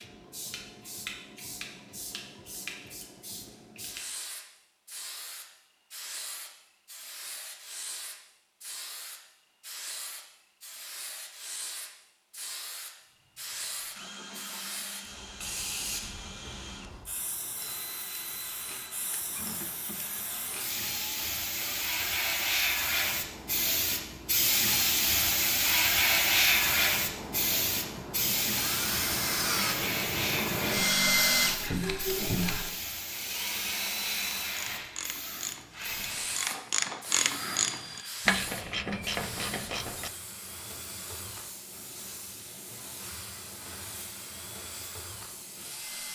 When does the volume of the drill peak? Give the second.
31 s.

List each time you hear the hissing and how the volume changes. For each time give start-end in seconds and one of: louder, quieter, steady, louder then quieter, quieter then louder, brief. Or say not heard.
0.0-46.0 louder then quieter.